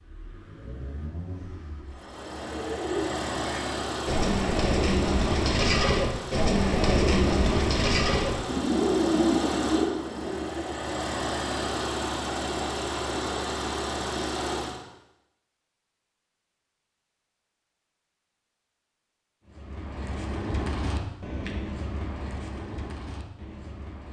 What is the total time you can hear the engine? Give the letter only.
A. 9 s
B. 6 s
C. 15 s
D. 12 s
C.